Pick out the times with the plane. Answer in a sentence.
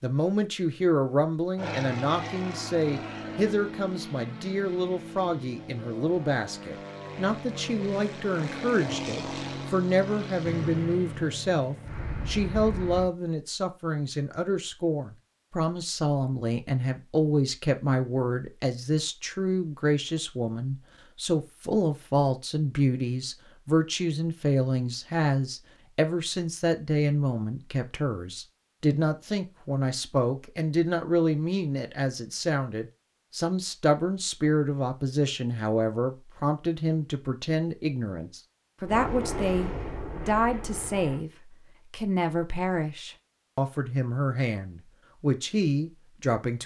You can hear the plane from 1.6 to 13.1 s and from 38.9 to 41.2 s.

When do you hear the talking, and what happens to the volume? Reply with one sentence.
You can hear the talking from 0.0 to 46.6 s, at a steady volume.